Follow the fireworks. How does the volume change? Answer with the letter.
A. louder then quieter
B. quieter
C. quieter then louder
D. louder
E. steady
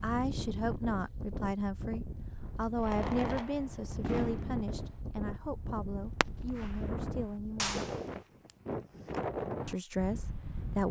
C.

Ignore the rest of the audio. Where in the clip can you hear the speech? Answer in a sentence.
You can hear the speech from 0.0 to 7.8 s and from 9.7 to 10.8 s.